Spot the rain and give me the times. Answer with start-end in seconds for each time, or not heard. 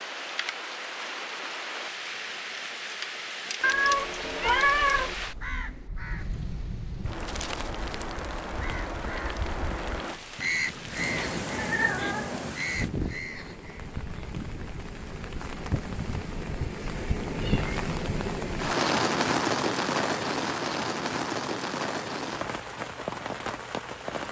0.0-24.2.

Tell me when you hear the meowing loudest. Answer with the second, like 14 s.
5 s.